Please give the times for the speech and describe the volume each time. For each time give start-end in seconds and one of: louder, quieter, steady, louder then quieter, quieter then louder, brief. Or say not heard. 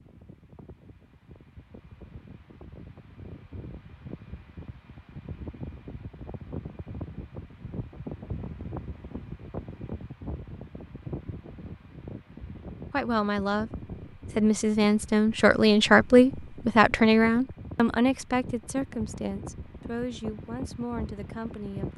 12.9-13.7 brief
14.3-21.9 quieter.